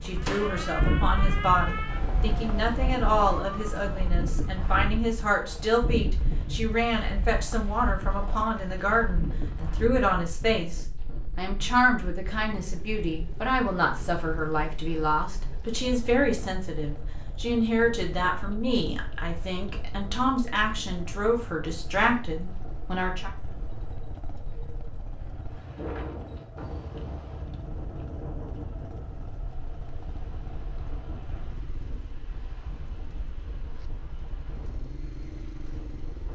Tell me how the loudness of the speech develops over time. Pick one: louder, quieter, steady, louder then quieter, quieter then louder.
steady.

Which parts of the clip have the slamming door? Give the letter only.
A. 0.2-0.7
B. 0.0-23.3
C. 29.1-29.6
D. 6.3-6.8
A.